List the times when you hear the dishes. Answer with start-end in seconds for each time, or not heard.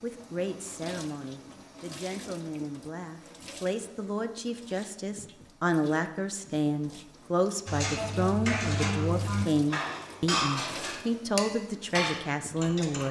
7.7-13.0.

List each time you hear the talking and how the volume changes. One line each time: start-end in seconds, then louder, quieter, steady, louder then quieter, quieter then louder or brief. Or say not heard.
0.0-13.0 louder.